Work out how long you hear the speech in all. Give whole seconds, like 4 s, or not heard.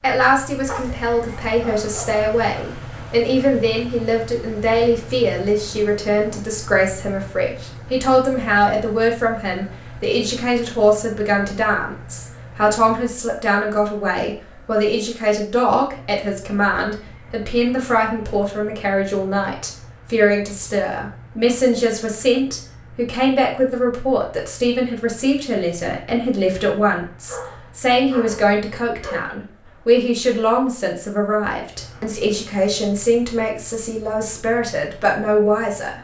36 s.